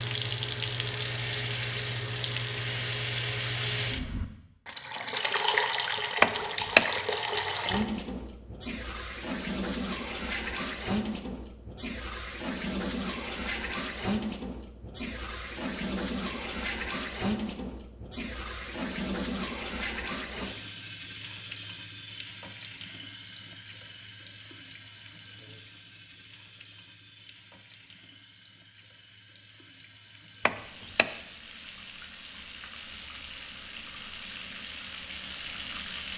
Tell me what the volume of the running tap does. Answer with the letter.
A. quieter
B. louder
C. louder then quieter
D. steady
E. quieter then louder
A.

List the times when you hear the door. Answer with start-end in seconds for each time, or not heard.
6.2-6.9, 30.4-31.1.